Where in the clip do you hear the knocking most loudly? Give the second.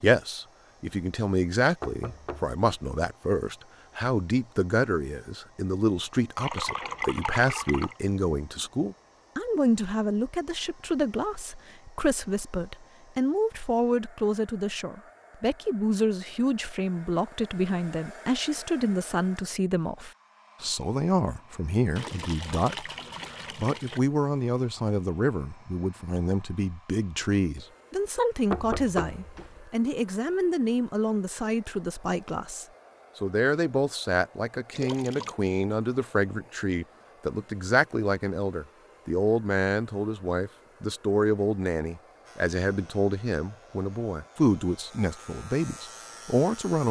29 s.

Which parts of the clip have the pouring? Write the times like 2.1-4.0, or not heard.
6.3-8.0, 21.9-24.0, 34.7-35.4.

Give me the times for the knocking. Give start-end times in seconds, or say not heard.
1.8-3.0, 28.5-29.6.